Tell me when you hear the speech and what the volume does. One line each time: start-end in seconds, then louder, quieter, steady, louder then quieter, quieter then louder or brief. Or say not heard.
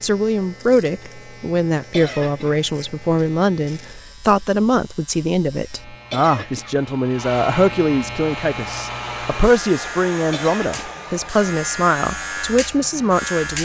0.0-13.5 steady.